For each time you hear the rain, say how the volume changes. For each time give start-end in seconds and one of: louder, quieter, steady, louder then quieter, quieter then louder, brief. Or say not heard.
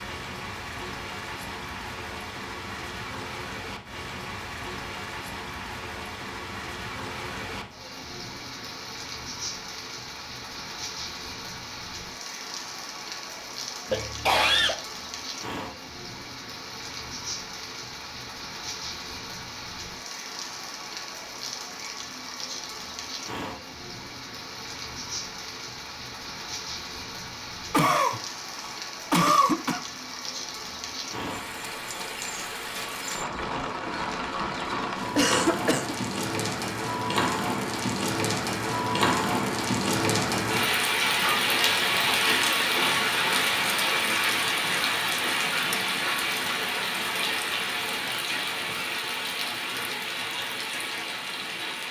0.0-51.8 louder.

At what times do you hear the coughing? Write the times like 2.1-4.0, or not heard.
13.9-14.8, 27.7-29.8, 35.1-36.0.